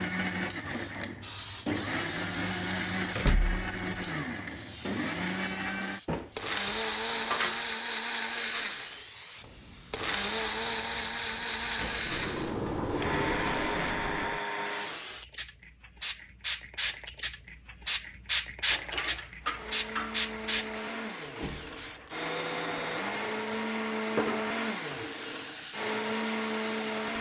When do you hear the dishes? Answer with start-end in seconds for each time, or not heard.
6.0-7.8, 18.7-20.2.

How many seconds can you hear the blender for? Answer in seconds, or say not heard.
23 s.